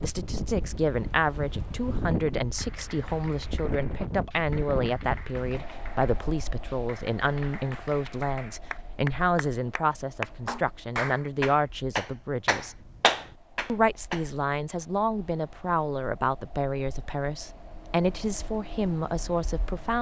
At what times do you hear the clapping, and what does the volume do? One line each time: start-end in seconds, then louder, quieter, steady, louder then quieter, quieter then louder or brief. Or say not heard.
2.5-14.2 louder.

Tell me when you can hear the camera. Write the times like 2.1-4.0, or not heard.
not heard.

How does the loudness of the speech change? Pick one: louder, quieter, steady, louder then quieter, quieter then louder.
steady.